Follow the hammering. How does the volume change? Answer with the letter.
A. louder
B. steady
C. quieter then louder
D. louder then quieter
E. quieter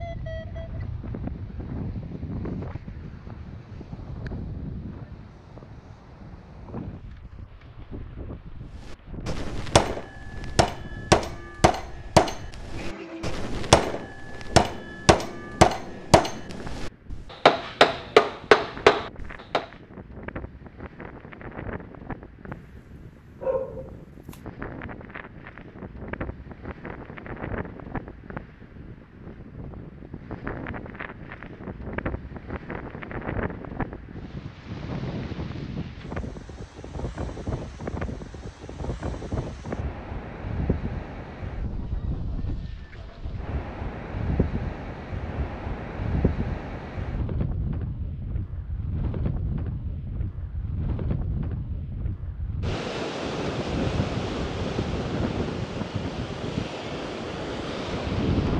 A.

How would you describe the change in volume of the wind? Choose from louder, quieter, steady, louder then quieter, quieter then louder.
louder.